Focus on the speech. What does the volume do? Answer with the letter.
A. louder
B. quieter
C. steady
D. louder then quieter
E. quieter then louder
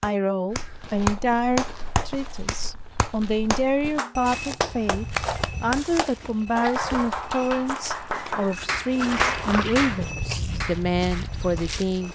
C.